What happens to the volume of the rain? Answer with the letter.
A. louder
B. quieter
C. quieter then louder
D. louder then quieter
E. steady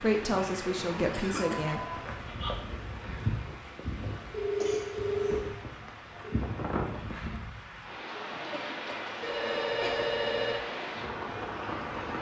E.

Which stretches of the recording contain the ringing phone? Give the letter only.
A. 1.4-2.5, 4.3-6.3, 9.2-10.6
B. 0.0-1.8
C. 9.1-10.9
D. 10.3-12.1
A.